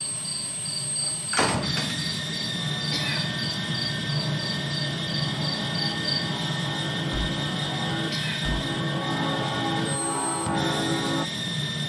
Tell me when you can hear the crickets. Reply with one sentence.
You can hear the crickets from 0.1 to 6.2 s.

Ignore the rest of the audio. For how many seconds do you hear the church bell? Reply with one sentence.
You can hear the church bell for 9 seconds altogether.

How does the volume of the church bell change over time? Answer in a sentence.
The loudness of the church bell goes up.